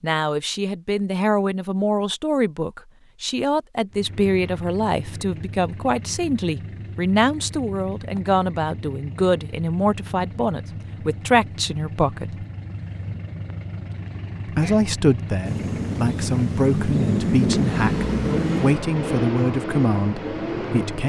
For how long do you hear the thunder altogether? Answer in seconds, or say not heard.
3 s.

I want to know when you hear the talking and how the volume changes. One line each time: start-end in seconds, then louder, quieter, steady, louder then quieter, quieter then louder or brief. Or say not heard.
0.0-12.4 steady
14.4-21.0 steady.